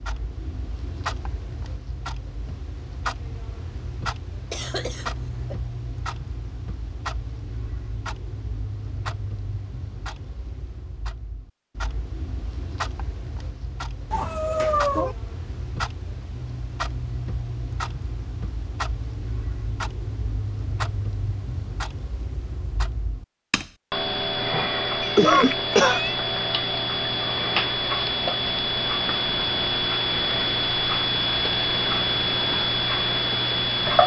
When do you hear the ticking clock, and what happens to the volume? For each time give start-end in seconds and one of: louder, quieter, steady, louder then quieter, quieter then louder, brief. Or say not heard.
0.0-34.0 louder.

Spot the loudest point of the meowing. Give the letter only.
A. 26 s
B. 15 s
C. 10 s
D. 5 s
B.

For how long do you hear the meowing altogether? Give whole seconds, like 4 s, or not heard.
2 s.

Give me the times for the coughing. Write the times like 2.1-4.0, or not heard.
4.5-5.5, 25.1-26.0.